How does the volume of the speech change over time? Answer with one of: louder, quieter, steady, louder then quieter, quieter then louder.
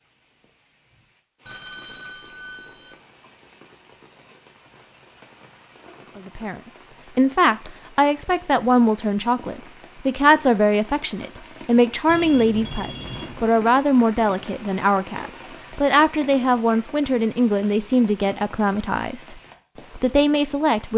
steady.